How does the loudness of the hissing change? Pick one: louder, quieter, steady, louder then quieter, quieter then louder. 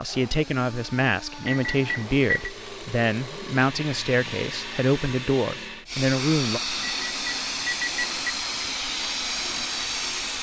louder.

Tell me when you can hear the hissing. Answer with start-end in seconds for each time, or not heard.
0.0-10.3.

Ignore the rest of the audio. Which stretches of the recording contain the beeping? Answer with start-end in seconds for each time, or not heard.
1.4-2.5, 6.8-8.2.